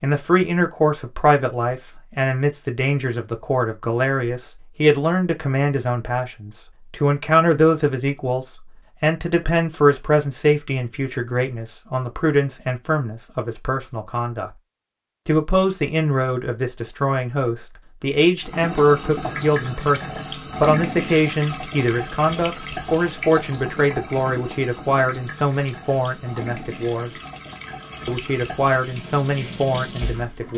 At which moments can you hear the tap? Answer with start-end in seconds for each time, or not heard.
18.4-30.5.